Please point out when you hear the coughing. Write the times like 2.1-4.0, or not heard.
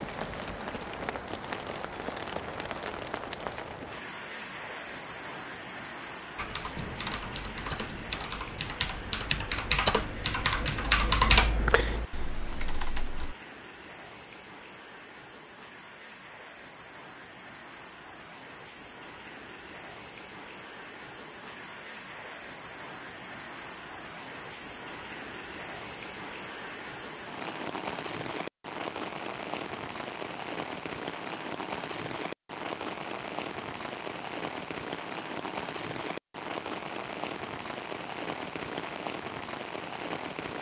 not heard.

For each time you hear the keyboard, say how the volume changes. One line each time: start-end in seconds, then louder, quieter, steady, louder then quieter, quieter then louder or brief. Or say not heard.
6.3-13.3 louder then quieter.